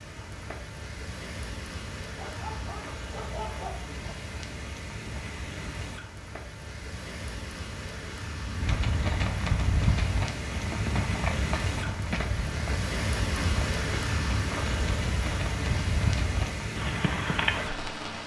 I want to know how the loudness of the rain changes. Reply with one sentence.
The volume of the rain goes up.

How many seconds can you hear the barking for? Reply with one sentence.
You can hear the barking for 2 seconds altogether.